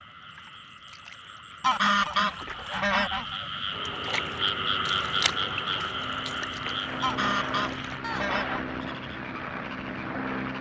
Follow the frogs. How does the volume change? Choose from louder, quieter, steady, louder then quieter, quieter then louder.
louder then quieter.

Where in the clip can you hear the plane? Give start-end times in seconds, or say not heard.
3.7-10.5.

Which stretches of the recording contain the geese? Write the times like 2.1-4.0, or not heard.
1.6-3.4, 7.0-8.8.